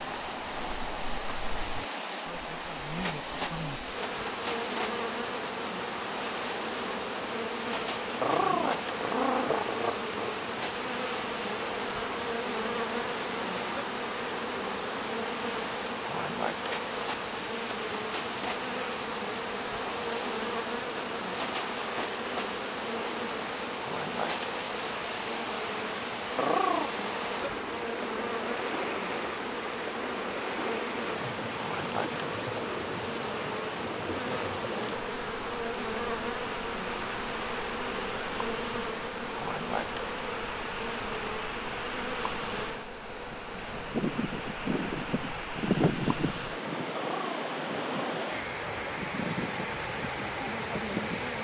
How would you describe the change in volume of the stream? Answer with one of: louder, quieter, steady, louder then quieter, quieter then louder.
steady.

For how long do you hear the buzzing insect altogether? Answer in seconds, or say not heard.
51 s.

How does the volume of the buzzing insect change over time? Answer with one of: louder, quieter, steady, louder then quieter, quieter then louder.
steady.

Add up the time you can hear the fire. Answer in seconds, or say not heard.
not heard.